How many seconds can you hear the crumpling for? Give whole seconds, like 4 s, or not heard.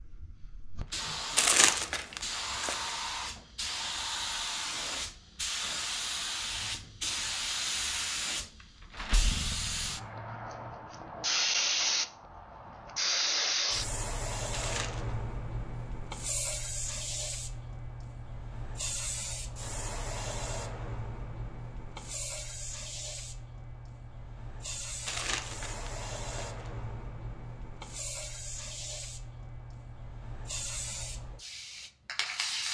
4 s.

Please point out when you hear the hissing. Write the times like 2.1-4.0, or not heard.
0.0-32.6.